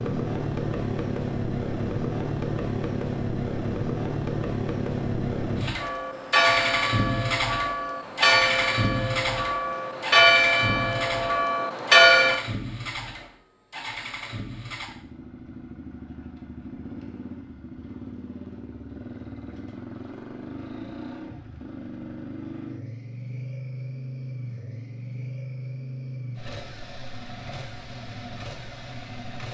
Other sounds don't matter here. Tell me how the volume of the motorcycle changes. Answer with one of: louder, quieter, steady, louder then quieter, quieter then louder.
quieter.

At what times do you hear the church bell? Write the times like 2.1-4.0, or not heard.
5.8-12.4.